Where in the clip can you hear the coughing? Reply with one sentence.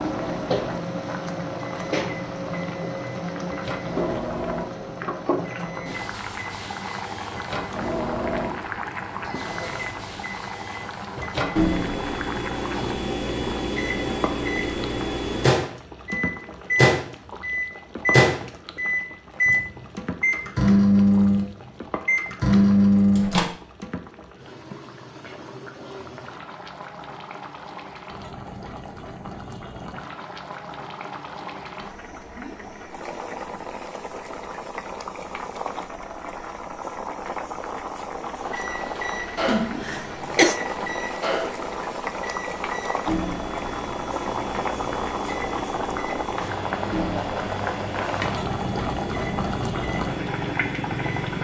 You can hear the coughing from 39.5 to 40.6 s.